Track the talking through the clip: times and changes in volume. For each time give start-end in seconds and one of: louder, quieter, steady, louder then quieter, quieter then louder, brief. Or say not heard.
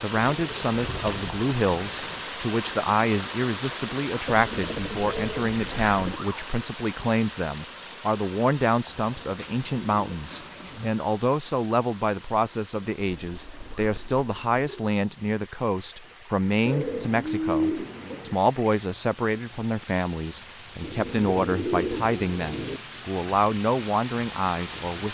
0.0-25.0 steady.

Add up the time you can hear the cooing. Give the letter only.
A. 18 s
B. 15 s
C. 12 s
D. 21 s
C.